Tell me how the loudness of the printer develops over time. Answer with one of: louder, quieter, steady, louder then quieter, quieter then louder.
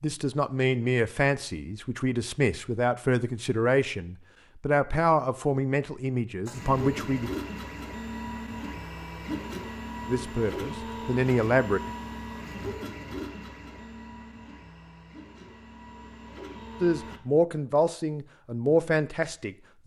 quieter.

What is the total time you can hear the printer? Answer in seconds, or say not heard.
11 s.